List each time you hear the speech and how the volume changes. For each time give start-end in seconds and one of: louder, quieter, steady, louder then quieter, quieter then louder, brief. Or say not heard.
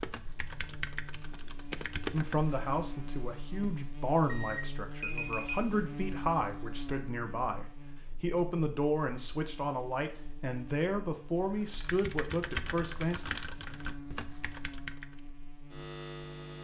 2.1-13.2 steady.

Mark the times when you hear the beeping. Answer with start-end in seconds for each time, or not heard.
4.2-5.6.